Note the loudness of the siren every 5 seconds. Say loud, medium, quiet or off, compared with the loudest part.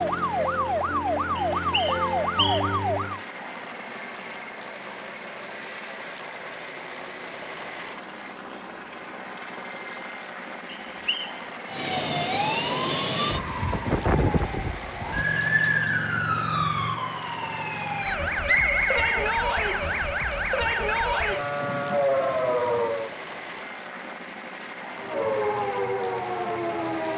loud, off, loud, loud, loud, loud.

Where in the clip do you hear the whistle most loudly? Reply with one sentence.
The loudest moment of the whistle is at 19 seconds.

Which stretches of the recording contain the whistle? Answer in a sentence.
The whistle can be heard from 1.4 to 2.8 s, from 10.7 to 11.3 s and from 18.4 to 20.1 s.